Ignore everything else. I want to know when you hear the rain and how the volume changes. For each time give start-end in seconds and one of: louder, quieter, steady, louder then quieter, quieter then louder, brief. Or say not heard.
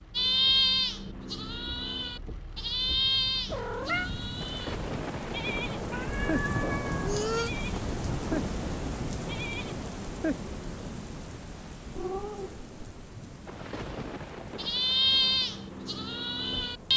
0.0-16.9 louder then quieter.